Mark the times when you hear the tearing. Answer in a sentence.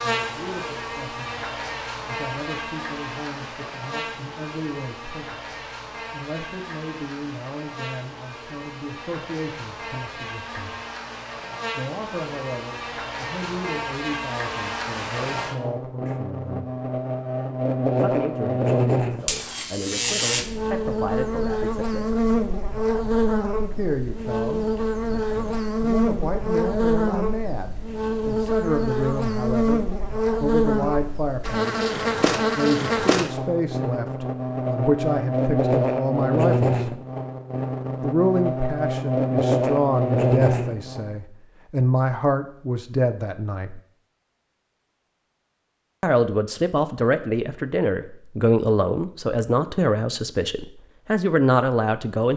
The tearing can't be heard in this clip.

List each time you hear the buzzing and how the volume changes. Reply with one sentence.
You can hear the buzzing from 0.0 to 41.1 s, getting louder.